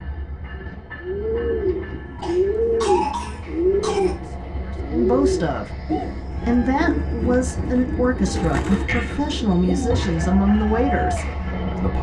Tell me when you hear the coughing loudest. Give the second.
3 s.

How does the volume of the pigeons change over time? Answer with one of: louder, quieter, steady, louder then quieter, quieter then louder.
quieter.